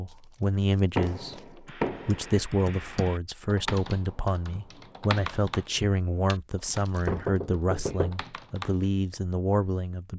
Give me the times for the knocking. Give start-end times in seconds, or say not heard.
0.9-2.4, 7.0-8.2.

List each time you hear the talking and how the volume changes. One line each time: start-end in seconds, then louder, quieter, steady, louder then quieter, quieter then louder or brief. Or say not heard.
0.0-10.1 steady.